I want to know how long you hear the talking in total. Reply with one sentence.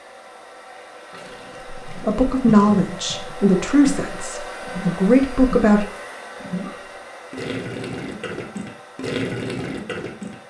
You can hear the talking for 4 seconds altogether.